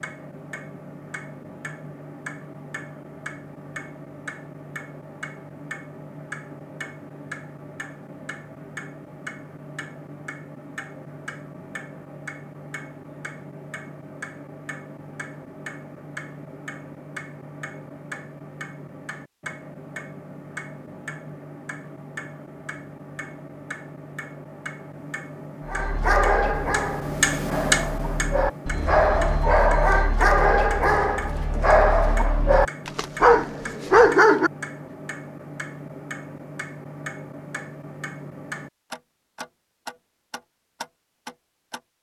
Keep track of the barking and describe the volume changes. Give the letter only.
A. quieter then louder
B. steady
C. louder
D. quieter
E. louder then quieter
C.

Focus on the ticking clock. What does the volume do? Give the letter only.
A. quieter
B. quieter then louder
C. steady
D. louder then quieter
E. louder
D.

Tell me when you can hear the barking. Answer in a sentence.
You can hear the barking from 25.6 to 34.5 s.